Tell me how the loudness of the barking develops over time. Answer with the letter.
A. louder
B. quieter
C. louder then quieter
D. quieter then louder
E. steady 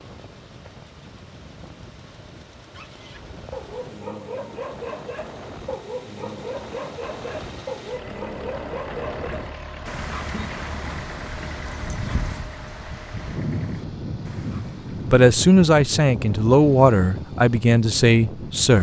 B.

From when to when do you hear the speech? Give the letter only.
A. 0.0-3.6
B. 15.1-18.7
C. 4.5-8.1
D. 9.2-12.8
B.